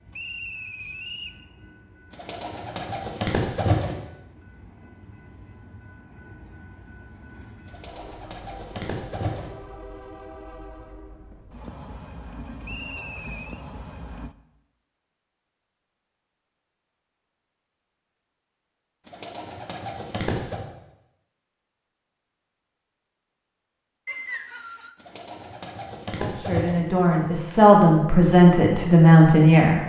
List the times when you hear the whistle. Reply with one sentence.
You can hear the whistle from 0.1 to 1.4 s, from 12.6 to 13.6 s and from 24.1 to 24.9 s.